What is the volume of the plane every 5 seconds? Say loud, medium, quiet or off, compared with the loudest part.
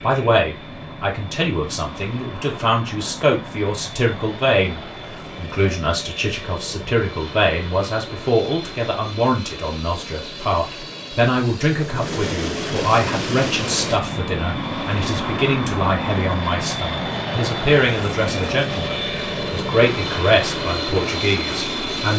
medium, medium, loud, loud, loud.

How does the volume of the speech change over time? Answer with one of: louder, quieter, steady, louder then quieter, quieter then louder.
steady.